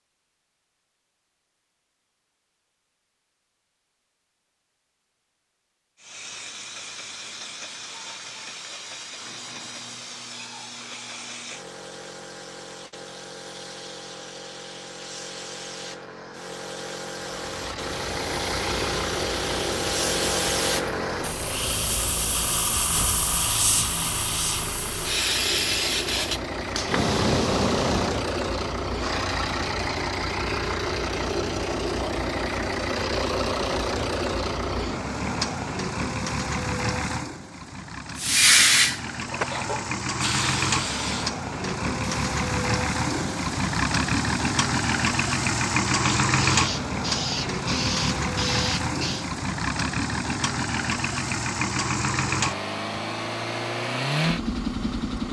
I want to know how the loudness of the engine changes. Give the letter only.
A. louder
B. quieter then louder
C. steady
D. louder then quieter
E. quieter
A.